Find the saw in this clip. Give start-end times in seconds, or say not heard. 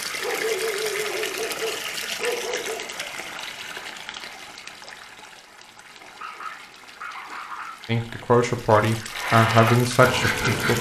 9.1-10.7.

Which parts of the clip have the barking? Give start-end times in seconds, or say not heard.
0.2-2.9, 6.0-7.8.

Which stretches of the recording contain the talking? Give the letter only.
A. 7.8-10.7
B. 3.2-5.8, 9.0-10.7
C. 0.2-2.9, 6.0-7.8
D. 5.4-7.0
A.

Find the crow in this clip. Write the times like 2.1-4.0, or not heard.
not heard.